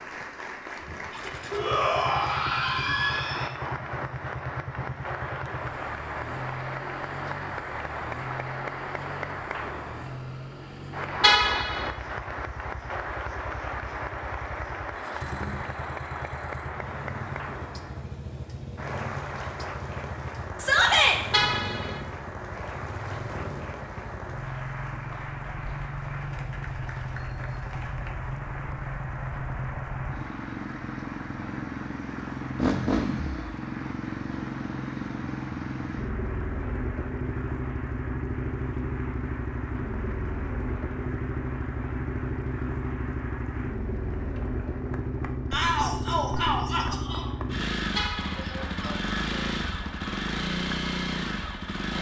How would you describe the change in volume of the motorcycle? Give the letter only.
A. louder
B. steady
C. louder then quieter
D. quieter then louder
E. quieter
A.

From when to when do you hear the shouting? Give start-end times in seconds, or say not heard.
1.5-3.5, 20.6-21.2, 45.5-47.3.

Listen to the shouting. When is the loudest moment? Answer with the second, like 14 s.
21 s.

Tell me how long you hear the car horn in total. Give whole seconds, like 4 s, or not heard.
2 s.